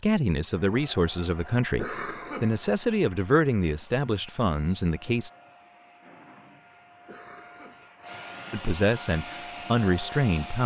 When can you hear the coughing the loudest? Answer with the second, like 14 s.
2 s.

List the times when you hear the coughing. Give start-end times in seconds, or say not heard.
1.8-2.5, 7.0-7.9.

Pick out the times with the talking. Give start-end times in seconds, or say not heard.
0.0-5.3, 8.5-10.6.